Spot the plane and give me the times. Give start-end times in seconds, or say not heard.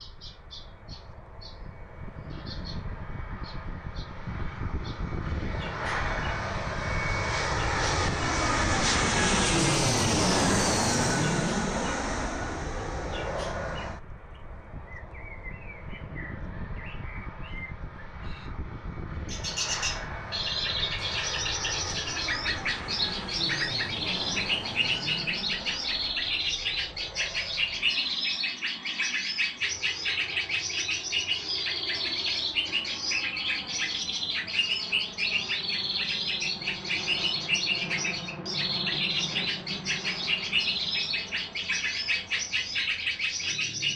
0.0-43.9.